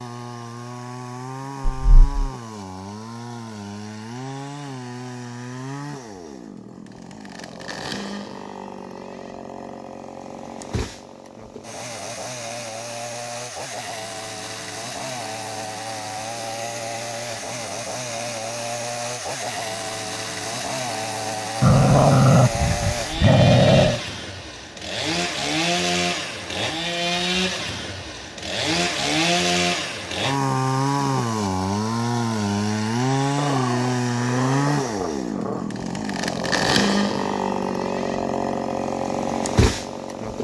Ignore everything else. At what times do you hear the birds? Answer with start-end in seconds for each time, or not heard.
not heard.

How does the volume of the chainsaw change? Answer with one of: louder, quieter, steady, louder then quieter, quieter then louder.
louder.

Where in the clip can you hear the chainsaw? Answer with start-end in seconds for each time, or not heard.
0.0-40.3.